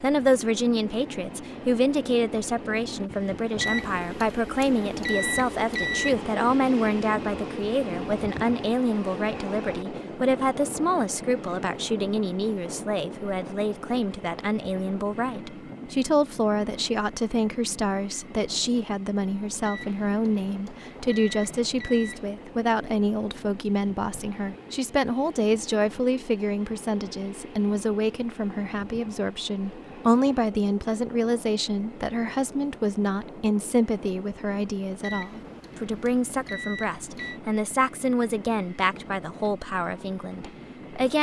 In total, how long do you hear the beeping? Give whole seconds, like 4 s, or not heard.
8 s.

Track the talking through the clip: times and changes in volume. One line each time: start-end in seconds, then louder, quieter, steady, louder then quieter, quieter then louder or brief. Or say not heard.
0.0-41.1 steady.